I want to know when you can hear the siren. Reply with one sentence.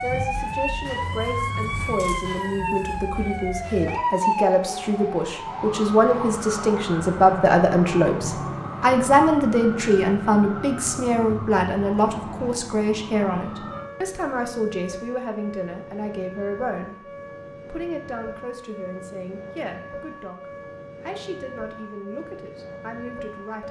You can hear the siren from 0.0 to 23.6 s.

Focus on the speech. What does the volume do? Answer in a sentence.
The volume of the speech goes up, then down.